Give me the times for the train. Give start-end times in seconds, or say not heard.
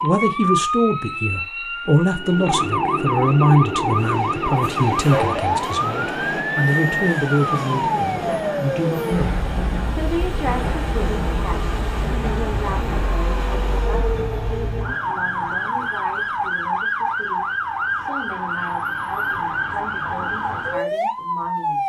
2.0-15.1.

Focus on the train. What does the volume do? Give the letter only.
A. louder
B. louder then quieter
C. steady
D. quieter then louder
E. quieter
C.